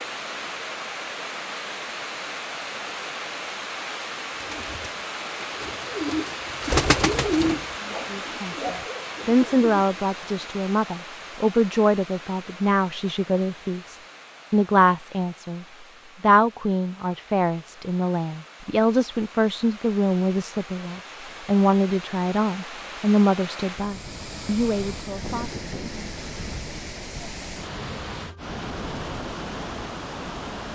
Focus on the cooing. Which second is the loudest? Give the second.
7 s.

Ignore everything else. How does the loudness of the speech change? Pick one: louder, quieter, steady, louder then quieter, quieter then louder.
steady.